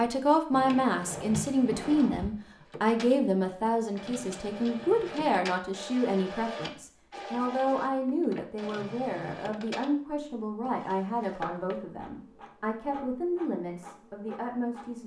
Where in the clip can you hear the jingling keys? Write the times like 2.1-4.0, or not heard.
not heard.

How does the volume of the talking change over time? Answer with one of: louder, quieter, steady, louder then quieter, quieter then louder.
quieter.